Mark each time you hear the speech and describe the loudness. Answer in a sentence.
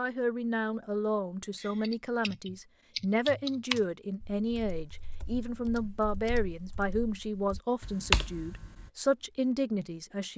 The speech can be heard from 0.0 to 10.3 s, at a steady volume.